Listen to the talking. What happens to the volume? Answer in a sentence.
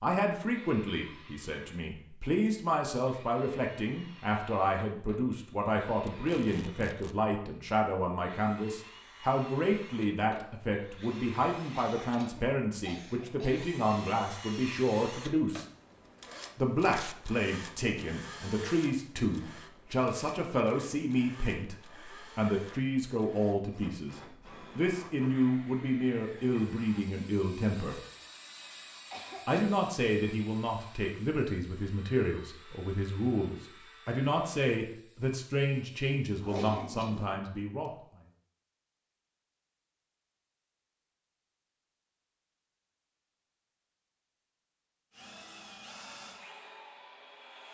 The volume of the talking stays about the same.